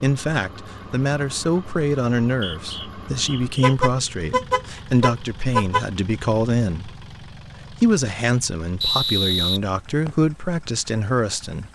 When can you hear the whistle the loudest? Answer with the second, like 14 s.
9 s.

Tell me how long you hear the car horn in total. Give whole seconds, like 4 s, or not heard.
2 s.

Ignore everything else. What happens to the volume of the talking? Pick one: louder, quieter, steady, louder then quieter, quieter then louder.
steady.